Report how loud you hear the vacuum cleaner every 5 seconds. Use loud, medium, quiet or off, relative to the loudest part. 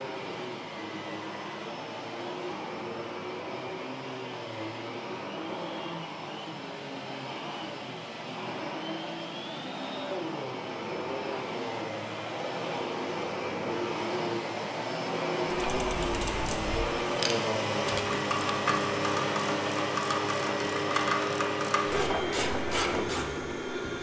medium, medium, loud, loud, loud.